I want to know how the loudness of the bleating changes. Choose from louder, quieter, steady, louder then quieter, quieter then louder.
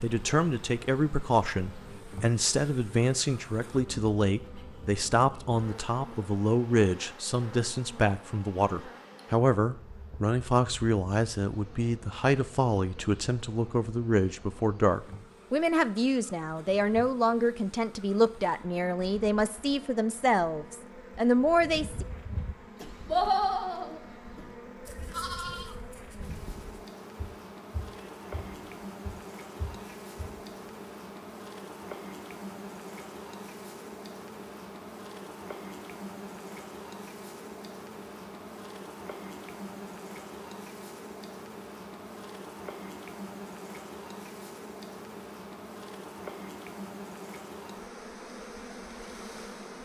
quieter.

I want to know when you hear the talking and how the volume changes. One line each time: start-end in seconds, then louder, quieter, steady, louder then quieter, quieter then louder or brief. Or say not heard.
0.0-22.1 steady.